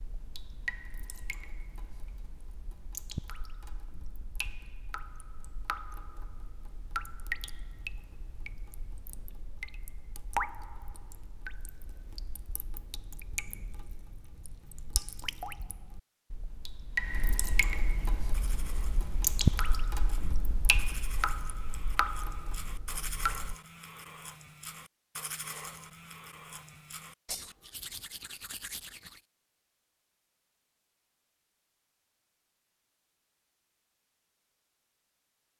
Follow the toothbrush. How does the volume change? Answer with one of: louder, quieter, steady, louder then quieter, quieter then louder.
louder.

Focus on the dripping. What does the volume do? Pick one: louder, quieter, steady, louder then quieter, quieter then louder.
louder.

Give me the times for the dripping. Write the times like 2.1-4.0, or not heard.
0.0-23.6.